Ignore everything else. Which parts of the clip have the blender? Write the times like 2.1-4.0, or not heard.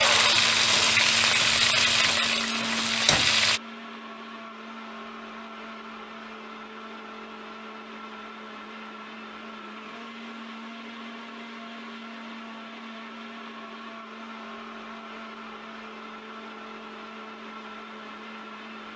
0.0-18.9.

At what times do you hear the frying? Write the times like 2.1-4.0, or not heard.
0.0-3.6.